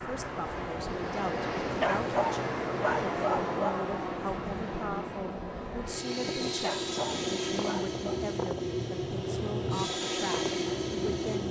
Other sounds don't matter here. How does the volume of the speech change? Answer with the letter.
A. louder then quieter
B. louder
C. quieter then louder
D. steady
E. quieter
D.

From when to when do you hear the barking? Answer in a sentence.
You can hear the barking from 1.8 to 3.7 s and from 6.6 to 8.2 s.